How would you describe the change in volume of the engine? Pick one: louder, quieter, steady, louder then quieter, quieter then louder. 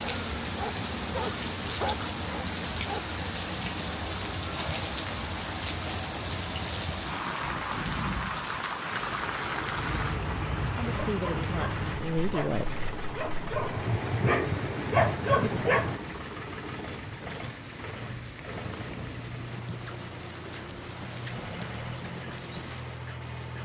steady.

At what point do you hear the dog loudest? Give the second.
15 s.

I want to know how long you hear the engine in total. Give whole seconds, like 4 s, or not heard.
15 s.